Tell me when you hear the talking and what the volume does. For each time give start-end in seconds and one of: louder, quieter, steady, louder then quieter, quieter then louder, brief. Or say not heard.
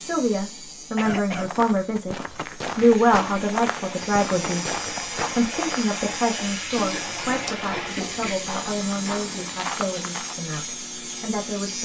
0.0-2.1 brief
2.8-11.8 quieter.